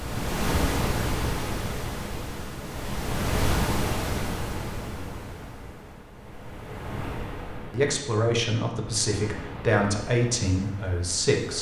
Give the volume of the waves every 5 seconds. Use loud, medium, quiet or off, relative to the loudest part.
loud, medium, quiet.